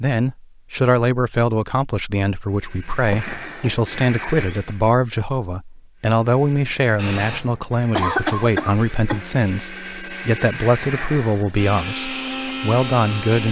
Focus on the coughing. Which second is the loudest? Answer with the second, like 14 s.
8 s.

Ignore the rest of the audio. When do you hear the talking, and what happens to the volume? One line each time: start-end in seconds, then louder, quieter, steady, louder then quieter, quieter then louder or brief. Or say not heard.
0.0-13.4 steady.